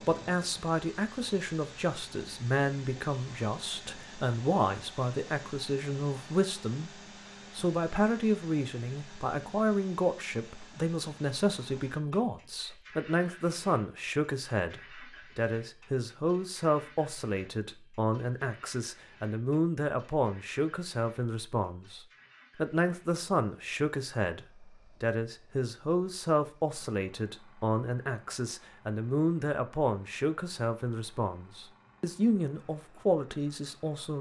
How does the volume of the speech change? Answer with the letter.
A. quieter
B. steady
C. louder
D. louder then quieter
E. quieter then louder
B.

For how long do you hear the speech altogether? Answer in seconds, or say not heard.
34 s.